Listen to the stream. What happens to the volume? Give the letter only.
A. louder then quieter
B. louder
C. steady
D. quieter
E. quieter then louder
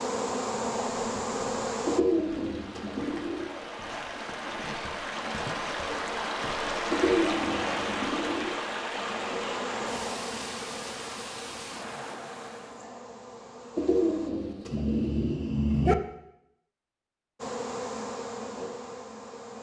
A.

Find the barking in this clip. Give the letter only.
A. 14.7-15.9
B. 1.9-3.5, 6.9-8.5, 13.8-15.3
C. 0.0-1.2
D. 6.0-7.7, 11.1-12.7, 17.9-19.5
A.